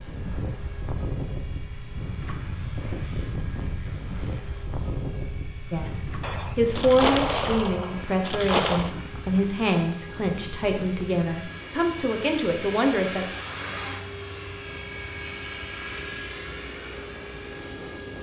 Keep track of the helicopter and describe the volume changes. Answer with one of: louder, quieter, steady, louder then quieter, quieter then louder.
louder.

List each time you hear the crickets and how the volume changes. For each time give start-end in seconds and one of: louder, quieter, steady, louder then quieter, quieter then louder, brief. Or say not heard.
not heard.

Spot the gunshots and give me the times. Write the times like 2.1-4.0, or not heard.
6.2-8.9.